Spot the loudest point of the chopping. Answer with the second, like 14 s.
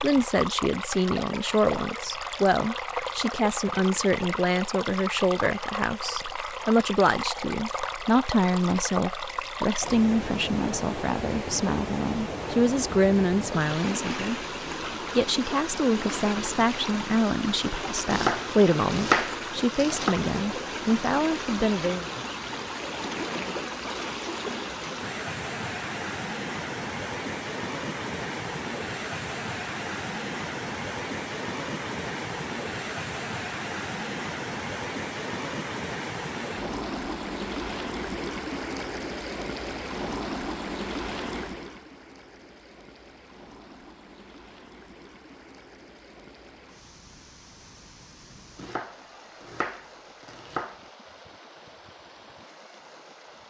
19 s.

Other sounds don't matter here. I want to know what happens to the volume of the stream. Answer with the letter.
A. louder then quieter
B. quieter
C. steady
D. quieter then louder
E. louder
B.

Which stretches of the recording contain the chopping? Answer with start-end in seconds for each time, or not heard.
18.1-20.1, 48.5-50.8.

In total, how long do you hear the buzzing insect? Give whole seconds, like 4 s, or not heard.
not heard.